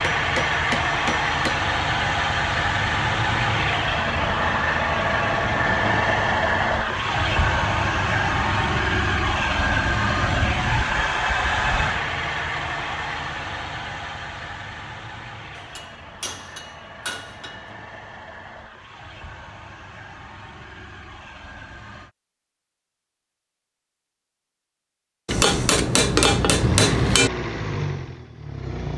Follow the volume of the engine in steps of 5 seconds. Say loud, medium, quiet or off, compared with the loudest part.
loud, loud, loud, quiet, quiet, medium.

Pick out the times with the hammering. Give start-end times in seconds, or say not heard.
0.0-1.6, 15.6-17.6, 25.2-27.3.